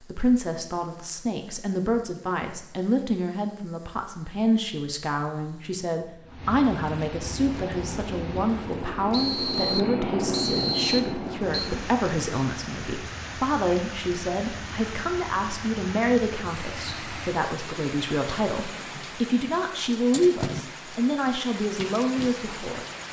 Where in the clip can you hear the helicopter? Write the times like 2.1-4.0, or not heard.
7.5-12.0.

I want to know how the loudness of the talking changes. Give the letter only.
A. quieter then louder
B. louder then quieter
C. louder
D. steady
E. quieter
D.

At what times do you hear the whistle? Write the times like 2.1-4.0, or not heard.
9.1-11.7.